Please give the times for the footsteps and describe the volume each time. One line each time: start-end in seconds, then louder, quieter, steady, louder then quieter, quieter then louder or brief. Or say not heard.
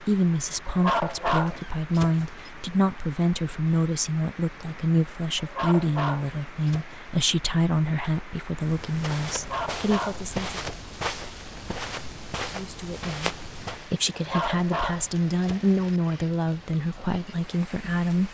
8.6-13.9 steady.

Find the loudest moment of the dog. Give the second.
1 s.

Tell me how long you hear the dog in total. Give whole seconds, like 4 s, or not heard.
7 s.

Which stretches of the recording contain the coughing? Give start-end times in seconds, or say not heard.
not heard.